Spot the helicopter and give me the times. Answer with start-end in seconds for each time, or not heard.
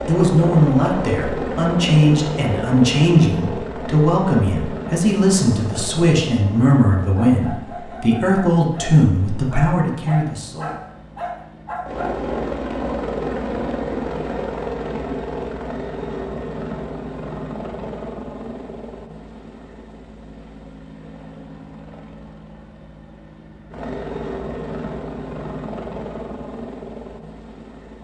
0.0-27.9.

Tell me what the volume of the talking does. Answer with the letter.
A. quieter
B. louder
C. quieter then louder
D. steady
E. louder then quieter
D.